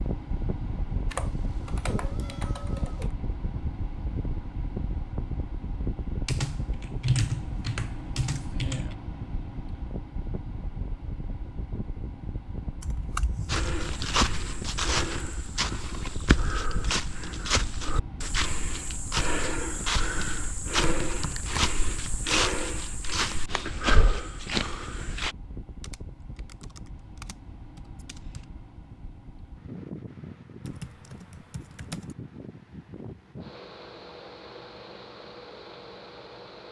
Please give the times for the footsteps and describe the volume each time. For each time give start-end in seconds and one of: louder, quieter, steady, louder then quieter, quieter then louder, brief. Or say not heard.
13.4-25.4 steady.